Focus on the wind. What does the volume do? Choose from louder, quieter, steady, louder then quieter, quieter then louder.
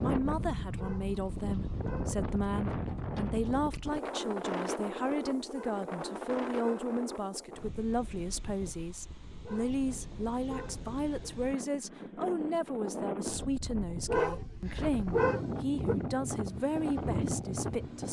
quieter then louder.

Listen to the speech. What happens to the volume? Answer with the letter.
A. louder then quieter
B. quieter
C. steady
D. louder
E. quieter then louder
C.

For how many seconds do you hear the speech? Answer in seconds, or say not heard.
18 s.